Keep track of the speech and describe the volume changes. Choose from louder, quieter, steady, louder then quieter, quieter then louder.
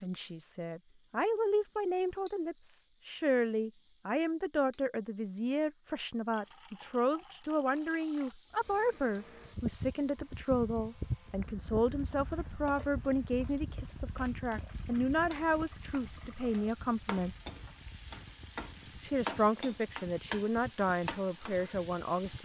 steady.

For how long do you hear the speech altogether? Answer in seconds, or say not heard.
21 s.